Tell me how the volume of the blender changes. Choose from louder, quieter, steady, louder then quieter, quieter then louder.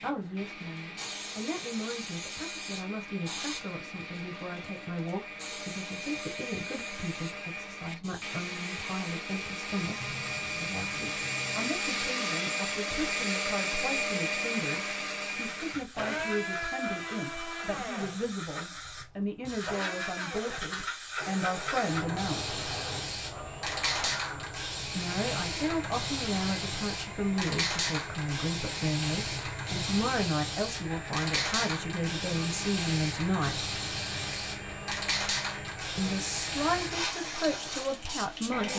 louder then quieter.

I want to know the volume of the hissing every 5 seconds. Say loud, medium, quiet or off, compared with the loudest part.
medium, medium, medium, medium, loud, loud, loud, loud.